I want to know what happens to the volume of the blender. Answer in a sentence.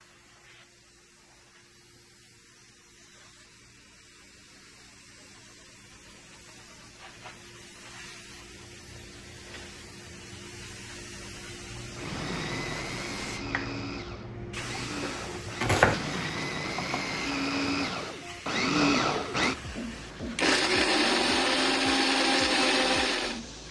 The volume of the blender goes up.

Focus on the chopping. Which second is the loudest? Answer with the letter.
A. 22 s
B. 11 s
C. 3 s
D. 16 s
D.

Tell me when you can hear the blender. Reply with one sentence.
You can hear the blender from 11.9 to 23.6 s.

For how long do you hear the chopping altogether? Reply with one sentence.
The chopping can be heard for 2 seconds in total.